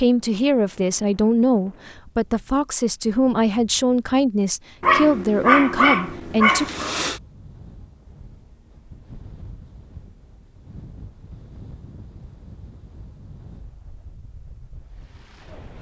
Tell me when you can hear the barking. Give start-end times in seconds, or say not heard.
4.8-7.2.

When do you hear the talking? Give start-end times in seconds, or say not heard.
0.0-6.7.